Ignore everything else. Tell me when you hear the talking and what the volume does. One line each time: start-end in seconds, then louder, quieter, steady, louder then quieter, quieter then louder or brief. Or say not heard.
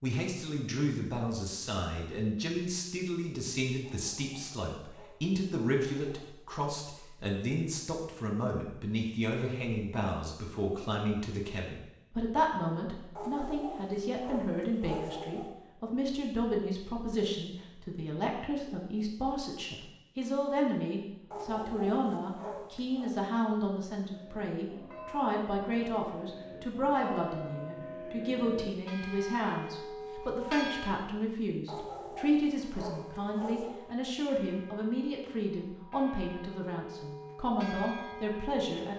0.0-38.9 steady.